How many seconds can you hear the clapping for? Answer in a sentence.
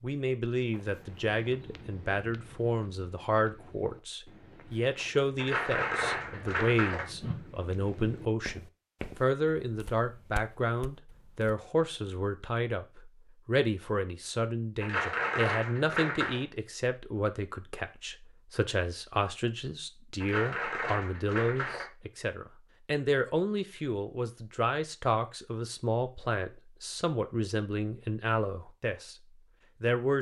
The clapping can be heard for 5 seconds in total.